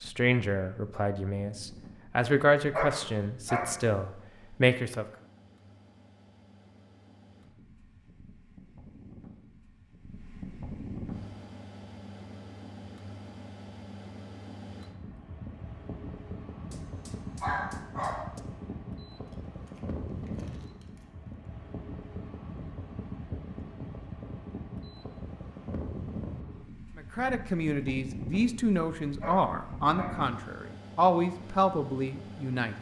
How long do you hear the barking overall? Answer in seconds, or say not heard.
4 s.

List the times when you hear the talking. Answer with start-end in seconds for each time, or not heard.
0.0-5.0, 26.9-32.7.